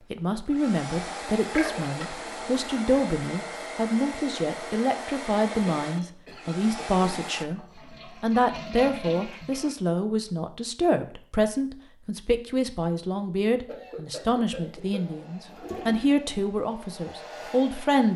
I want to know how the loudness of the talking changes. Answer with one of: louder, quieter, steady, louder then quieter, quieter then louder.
steady.